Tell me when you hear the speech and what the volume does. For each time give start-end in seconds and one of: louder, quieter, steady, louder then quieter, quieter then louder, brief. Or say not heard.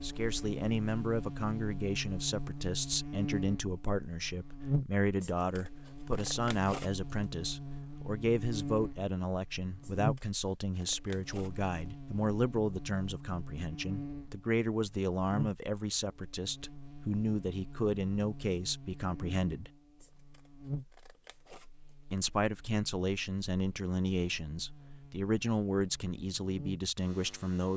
0.0-19.7 steady
22.1-27.7 steady.